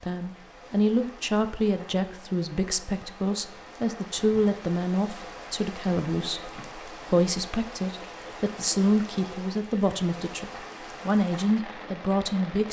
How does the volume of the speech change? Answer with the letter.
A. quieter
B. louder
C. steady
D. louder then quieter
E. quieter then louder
C.